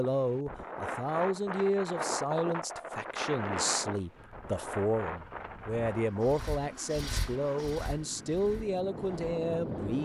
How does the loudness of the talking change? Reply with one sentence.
The loudness of the talking stays about the same.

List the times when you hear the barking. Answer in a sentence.
You can't hear the barking here.